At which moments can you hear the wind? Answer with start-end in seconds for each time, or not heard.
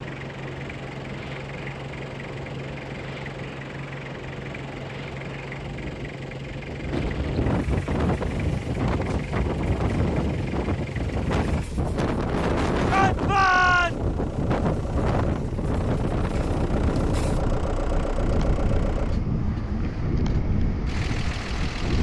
0.0-21.9.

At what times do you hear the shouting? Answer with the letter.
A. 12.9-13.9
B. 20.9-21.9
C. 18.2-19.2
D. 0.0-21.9
A.